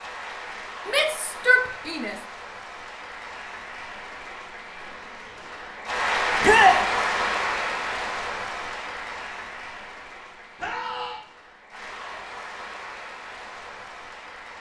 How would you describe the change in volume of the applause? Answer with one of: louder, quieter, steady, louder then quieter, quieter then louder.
louder then quieter.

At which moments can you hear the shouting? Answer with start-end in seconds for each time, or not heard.
0.8-2.1, 6.4-6.8, 10.6-11.2.